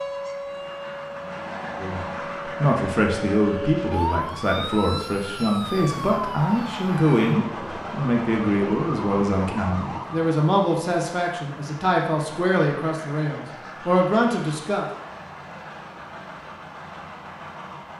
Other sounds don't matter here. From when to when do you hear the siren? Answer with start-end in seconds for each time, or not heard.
0.0-10.3.